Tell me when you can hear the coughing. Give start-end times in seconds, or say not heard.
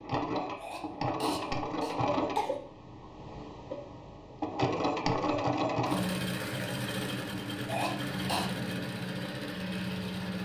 0.6-2.5, 7.7-8.5.